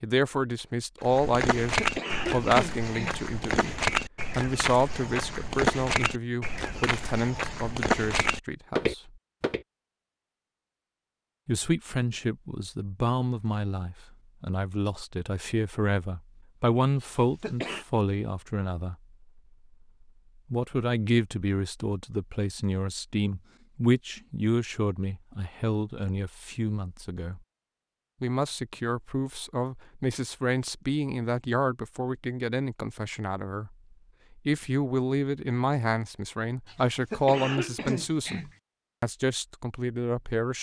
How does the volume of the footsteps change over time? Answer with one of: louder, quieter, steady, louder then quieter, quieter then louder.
quieter then louder.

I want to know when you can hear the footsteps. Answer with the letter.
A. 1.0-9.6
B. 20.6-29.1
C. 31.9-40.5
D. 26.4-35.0
A.